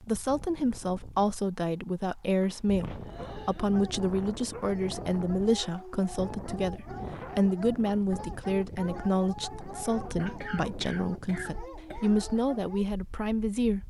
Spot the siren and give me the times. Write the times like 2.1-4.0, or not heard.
not heard.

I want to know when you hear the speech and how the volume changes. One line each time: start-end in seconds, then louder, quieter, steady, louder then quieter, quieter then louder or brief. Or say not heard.
0.1-13.8 steady.